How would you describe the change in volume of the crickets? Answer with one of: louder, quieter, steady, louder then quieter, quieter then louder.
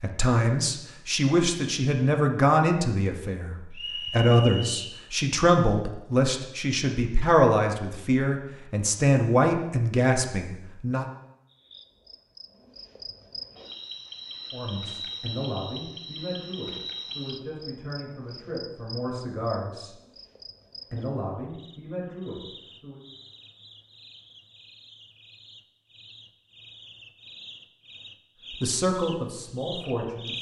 quieter then louder.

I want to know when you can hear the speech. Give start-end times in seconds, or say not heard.
0.0-11.1, 14.5-19.9, 20.9-23.0, 28.6-30.3.